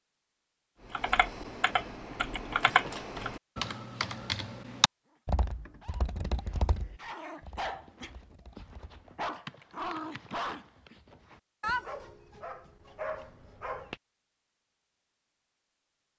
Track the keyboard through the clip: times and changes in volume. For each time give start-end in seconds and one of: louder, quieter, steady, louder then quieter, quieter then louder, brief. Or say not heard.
0.9-10.9 quieter then louder.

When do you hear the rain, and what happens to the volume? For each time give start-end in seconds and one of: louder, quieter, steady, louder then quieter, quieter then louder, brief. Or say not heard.
not heard.